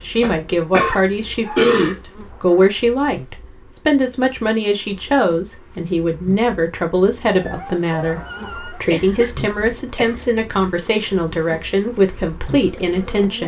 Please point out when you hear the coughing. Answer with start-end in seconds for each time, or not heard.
0.2-1.9, 8.8-10.2.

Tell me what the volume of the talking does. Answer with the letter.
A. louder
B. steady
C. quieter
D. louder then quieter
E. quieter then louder
B.